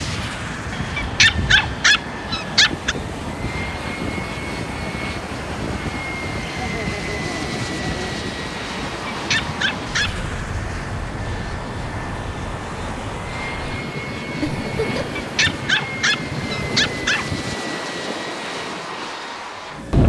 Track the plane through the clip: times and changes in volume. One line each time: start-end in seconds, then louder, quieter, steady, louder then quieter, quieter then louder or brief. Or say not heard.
0.0-20.0 steady.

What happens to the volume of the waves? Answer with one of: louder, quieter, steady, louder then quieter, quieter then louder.
steady.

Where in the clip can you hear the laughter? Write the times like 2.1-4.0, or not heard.
6.4-8.2, 14.4-15.1.